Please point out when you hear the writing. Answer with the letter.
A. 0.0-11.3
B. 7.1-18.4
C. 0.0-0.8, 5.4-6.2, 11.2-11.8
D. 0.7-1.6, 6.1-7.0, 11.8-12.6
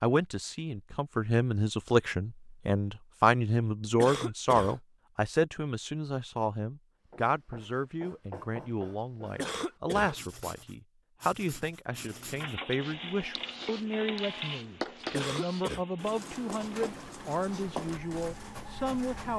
B.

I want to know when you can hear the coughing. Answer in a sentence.
The coughing can be heard from 4.0 to 4.8 s, from 9.3 to 10.2 s and from 15.1 to 15.8 s.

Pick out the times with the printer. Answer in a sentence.
The printer can be heard from 11.9 to 19.3 s.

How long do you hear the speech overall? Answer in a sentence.
The speech can be heard for 19 seconds in total.